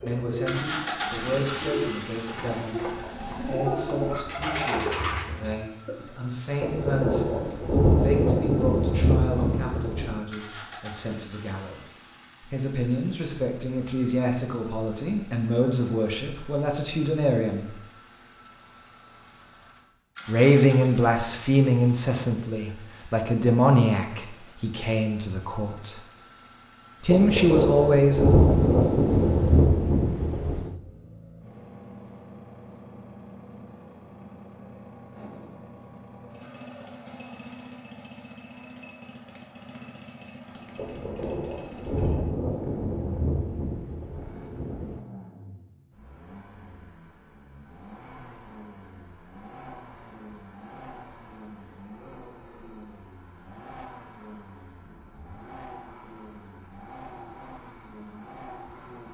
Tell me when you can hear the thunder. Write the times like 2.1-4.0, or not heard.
6.6-10.2, 27.1-30.7, 40.8-45.0.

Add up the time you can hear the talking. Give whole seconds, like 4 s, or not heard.
24 s.